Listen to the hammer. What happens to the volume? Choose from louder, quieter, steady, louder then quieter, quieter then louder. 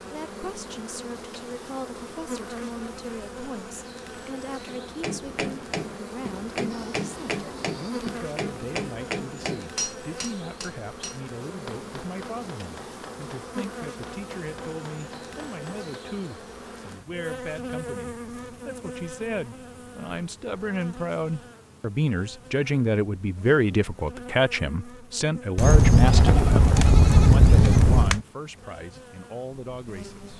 quieter.